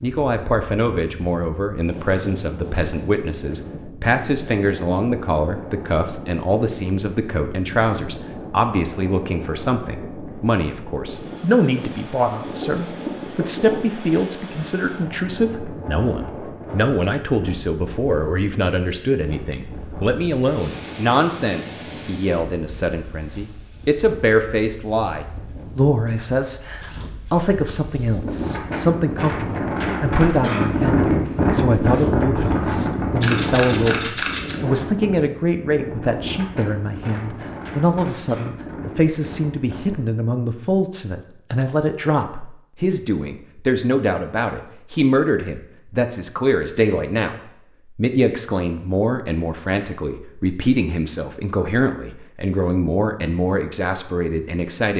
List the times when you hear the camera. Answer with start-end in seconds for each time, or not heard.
31.8-32.4, 33.2-34.5.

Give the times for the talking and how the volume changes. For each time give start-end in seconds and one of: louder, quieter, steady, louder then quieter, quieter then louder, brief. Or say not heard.
0.0-47.4 steady
48.0-54.9 steady.